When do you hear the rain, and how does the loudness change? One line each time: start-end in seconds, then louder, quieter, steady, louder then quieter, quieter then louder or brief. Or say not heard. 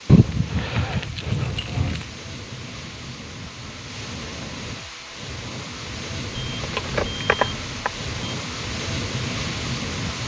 0.0-10.2 louder.